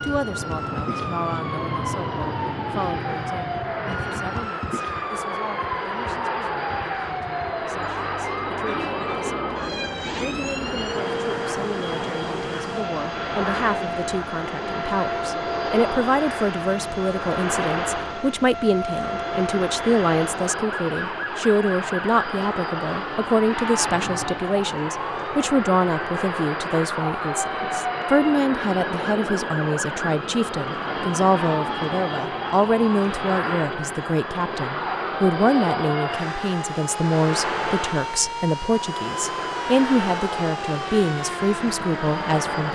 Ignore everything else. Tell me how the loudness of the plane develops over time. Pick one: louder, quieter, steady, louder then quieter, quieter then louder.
steady.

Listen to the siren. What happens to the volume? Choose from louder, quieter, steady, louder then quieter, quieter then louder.
steady.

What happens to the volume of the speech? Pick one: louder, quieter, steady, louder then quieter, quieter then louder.
louder.